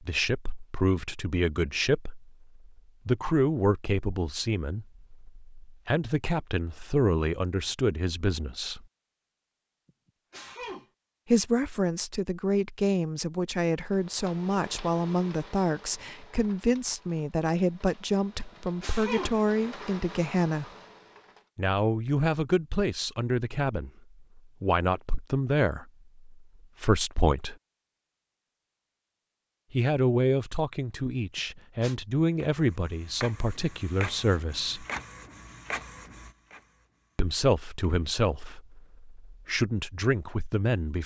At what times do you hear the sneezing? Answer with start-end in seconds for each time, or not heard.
9.8-10.8, 18.4-19.4, 31.4-31.9.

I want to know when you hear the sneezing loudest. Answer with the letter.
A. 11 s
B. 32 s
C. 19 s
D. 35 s
C.